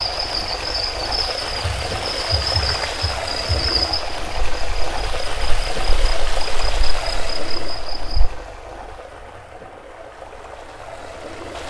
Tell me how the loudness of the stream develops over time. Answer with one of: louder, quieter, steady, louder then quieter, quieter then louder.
quieter.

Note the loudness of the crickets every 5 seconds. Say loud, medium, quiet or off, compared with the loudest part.
loud, medium, off.